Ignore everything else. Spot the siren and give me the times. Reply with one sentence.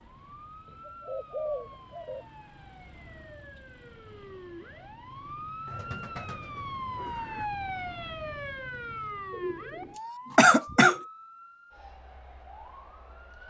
The siren can be heard from 0.0 to 13.4 s.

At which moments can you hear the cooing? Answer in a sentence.
The cooing can be heard from 0.7 to 2.2 s, from 5.7 to 7.5 s and from 9.3 to 11.1 s.